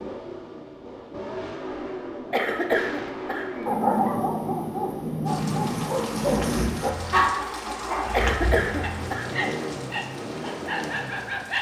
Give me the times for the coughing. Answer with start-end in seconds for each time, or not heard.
2.3-4.1, 8.1-9.3.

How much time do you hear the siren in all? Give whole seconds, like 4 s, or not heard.
not heard.